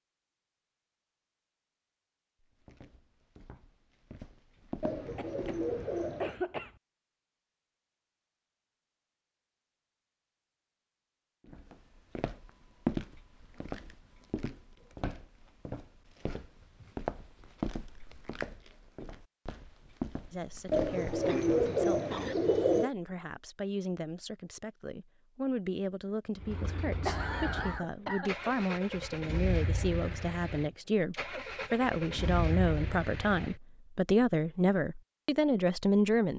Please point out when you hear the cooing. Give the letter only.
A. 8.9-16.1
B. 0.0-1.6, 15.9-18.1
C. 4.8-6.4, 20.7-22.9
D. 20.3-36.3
C.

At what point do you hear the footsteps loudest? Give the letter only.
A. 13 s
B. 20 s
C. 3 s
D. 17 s
A.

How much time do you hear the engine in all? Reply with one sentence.
The engine can be heard for 7 seconds in total.